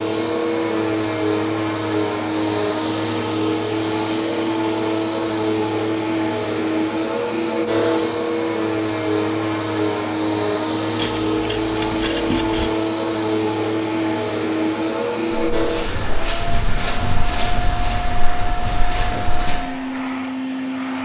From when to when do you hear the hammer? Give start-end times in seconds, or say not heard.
not heard.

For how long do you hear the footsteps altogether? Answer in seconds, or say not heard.
4 s.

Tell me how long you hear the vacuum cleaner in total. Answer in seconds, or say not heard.
21 s.